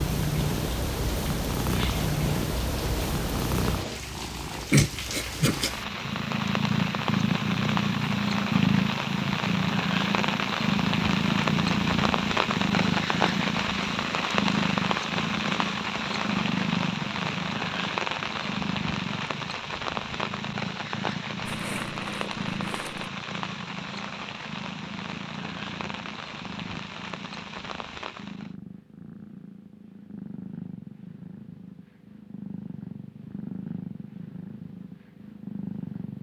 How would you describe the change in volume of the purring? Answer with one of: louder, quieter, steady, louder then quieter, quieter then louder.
quieter.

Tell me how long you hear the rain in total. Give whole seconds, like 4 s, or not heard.
28 s.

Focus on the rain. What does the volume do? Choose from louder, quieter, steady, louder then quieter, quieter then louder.
louder then quieter.